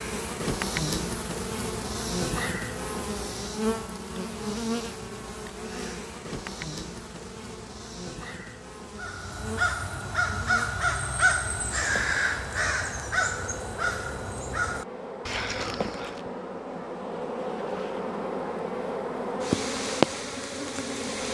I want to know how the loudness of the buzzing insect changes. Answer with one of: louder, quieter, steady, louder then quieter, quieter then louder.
quieter then louder.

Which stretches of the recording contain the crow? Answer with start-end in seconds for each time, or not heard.
8.9-16.2.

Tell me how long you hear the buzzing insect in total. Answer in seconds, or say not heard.
21 s.